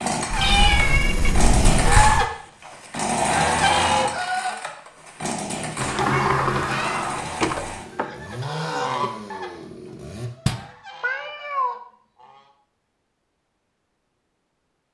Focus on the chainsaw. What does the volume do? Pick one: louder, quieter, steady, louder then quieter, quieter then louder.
quieter.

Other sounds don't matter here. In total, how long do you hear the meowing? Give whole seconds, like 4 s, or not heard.
3 s.